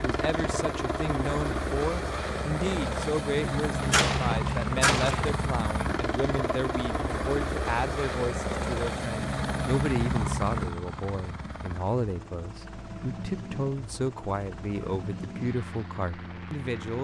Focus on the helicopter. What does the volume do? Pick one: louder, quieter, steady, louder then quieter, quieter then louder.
quieter.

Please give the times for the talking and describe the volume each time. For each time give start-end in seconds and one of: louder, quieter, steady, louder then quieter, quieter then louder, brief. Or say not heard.
0.0-16.9 steady.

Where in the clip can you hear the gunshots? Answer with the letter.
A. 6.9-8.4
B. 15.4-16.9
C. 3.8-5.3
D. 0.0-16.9
C.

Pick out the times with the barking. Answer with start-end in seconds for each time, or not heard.
not heard.